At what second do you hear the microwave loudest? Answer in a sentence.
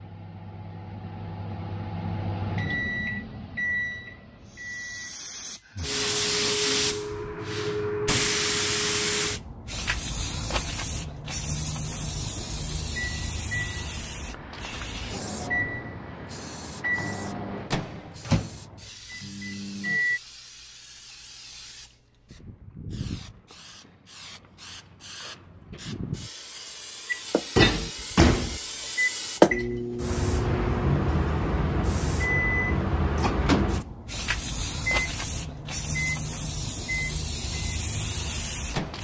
The volume of the microwave peaks at 28 seconds.